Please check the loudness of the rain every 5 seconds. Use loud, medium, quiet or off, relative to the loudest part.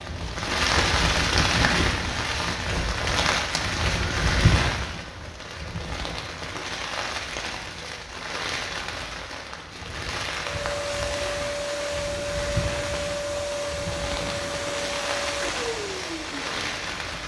loud, medium, medium, medium.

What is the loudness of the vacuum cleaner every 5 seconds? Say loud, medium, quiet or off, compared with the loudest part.
off, off, loud, loud.